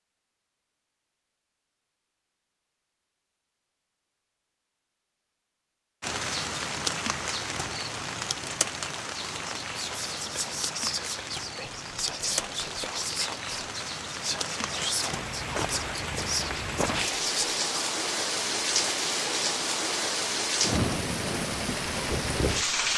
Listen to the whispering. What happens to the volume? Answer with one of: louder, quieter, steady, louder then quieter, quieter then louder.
steady.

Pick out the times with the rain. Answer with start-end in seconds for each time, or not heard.
6.0-22.9.